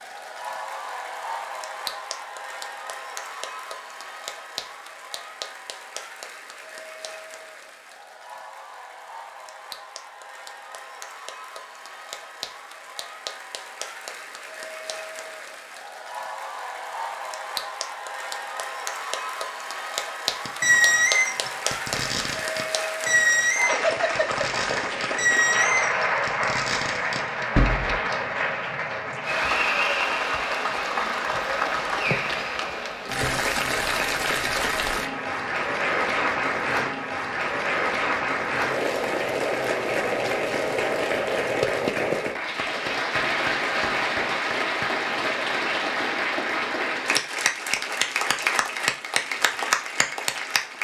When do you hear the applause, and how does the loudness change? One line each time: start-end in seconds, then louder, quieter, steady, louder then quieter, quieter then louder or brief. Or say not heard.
0.0-50.7 louder.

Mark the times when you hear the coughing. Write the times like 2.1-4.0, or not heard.
not heard.